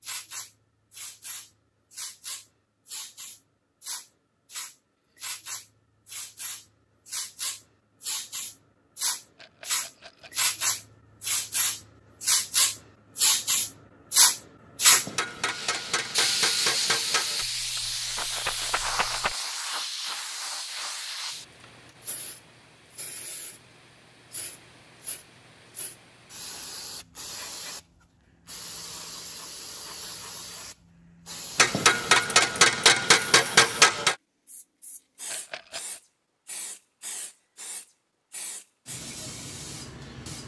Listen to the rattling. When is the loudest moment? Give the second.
19 s.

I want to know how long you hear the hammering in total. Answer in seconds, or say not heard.
5 s.